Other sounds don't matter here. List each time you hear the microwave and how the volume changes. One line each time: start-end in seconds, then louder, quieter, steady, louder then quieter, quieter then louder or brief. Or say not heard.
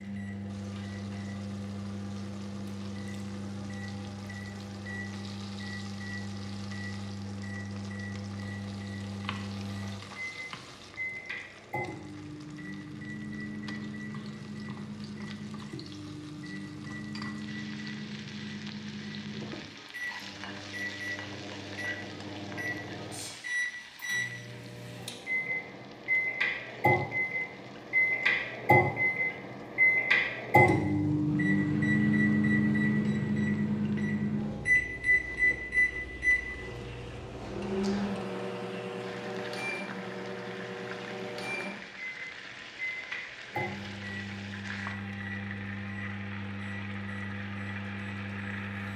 0.0-48.9 louder then quieter.